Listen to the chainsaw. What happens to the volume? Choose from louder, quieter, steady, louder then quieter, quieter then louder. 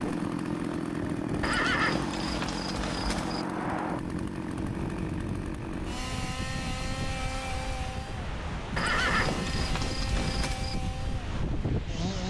quieter.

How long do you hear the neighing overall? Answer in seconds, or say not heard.
4 s.